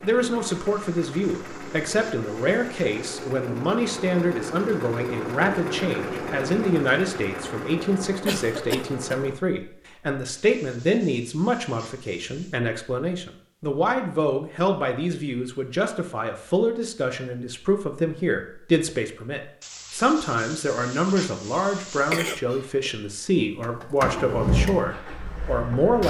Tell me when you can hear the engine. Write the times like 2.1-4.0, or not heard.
0.0-9.3, 23.6-26.0.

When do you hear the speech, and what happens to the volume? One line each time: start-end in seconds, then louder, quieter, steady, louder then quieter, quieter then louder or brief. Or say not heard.
0.0-26.0 steady.